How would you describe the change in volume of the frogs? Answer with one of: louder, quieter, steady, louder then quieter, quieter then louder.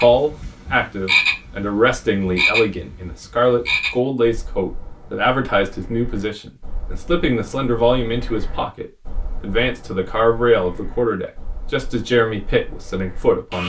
quieter.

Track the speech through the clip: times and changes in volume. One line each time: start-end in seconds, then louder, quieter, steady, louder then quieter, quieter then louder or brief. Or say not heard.
0.0-13.6 steady.